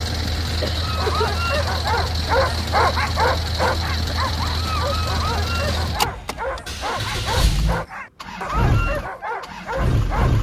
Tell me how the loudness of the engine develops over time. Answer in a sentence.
The volume of the engine stays about the same.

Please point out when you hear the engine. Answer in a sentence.
The engine can be heard from 0.0 to 10.3 s.